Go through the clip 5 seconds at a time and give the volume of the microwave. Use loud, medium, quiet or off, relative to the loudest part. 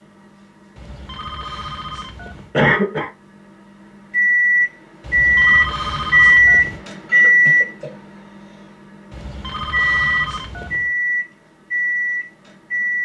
medium, loud, medium.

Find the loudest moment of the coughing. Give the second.
3 s.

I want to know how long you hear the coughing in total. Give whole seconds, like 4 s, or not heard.
2 s.